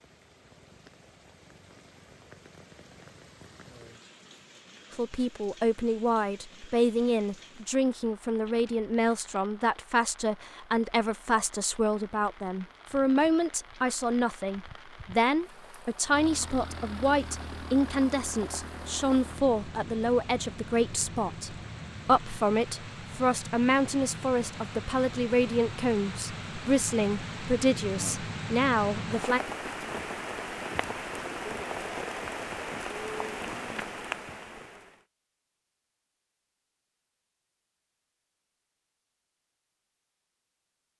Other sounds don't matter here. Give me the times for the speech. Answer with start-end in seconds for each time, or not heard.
4.9-29.4.